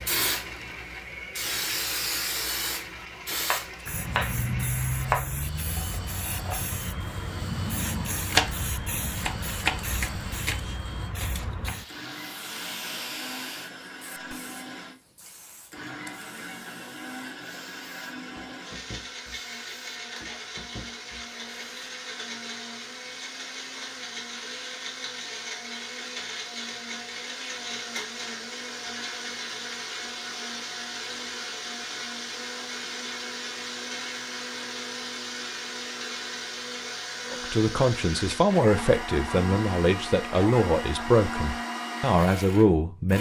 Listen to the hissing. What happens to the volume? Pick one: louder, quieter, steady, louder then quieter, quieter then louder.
quieter.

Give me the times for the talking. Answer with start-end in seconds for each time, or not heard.
37.3-43.1.